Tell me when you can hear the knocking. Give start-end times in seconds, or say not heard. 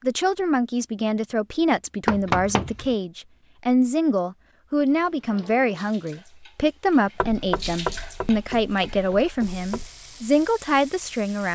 2.0-3.0, 7.2-9.9.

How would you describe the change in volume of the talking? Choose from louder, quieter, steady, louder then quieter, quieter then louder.
steady.